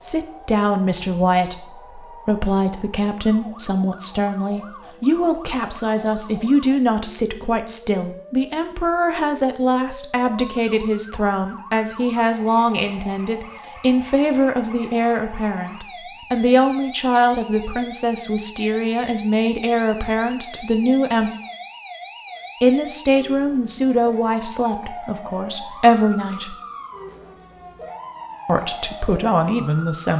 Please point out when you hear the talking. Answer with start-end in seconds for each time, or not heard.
0.0-21.3, 22.6-26.6, 28.4-30.1.